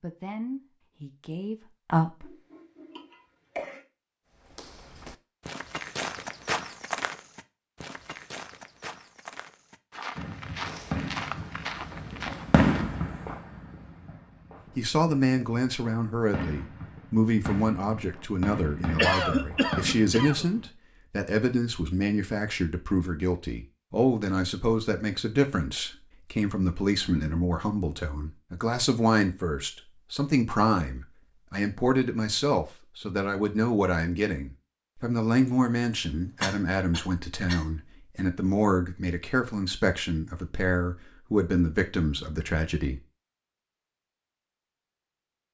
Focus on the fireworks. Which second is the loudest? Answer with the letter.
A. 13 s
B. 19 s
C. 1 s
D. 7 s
A.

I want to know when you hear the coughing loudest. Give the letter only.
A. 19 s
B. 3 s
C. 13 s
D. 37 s
A.